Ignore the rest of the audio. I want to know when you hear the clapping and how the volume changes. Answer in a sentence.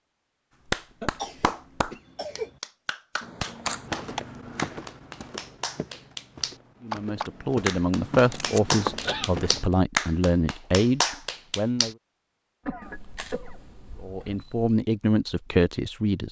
The clapping can be heard from 0.7 to 11.9 s, getting louder.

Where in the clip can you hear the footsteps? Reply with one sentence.
The footsteps can be heard from 3.5 to 9.8 s.